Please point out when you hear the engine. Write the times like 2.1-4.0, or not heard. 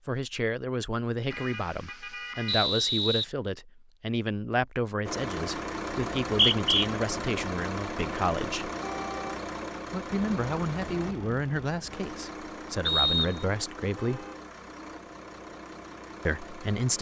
5.0-16.9.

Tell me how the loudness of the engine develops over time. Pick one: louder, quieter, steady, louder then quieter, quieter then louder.
quieter.